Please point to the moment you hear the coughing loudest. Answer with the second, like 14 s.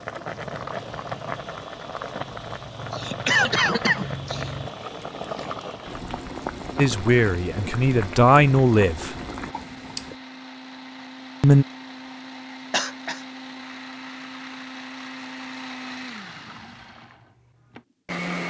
3 s.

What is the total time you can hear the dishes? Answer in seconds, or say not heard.
not heard.